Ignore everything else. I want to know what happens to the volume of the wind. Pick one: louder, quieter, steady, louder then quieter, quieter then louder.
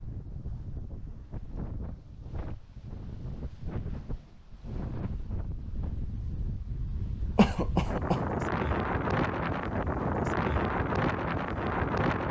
louder.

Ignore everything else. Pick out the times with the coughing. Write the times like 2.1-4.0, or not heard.
7.3-8.2.